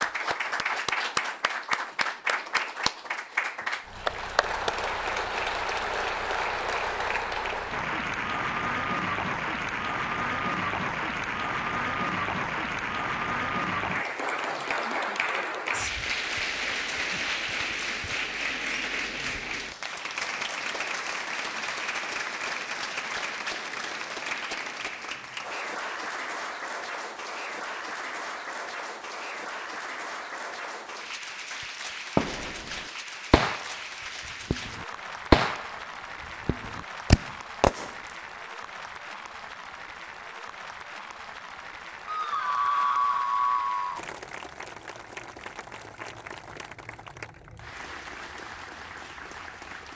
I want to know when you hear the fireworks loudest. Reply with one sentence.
The loudest moment of the fireworks is at 35 seconds.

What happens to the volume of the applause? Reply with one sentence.
The loudness of the applause goes down.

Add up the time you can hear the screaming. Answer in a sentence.
The screaming can be heard for 2 seconds in total.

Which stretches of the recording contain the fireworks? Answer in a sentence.
You can hear the fireworks from 32.1 to 32.6 s, from 33.3 to 33.7 s, from 34.5 to 35.7 s and from 36.5 to 37.9 s.